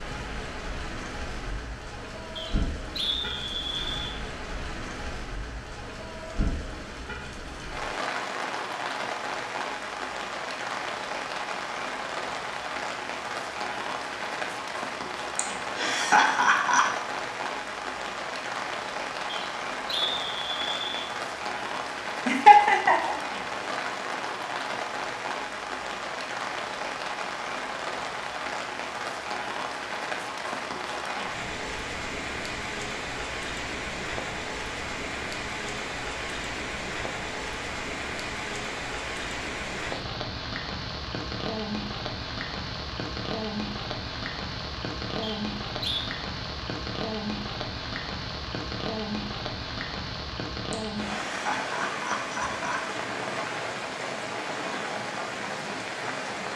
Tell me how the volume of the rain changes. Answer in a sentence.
The volume of the rain stays about the same.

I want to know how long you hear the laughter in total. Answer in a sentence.
You can hear the laughter for 5 seconds altogether.